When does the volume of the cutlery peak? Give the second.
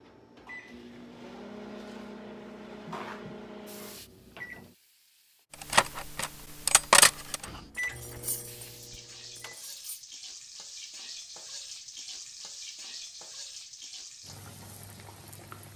7 s.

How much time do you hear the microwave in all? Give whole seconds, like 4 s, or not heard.
7 s.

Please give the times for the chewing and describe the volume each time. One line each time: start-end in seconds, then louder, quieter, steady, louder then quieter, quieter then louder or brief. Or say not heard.
not heard.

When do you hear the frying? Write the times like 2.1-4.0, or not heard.
3.6-5.5, 8.4-15.7.